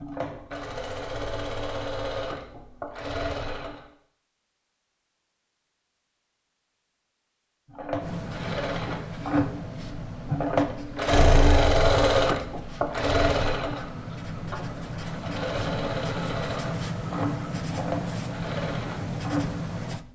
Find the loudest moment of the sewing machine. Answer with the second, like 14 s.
12 s.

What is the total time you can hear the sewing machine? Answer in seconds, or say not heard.
16 s.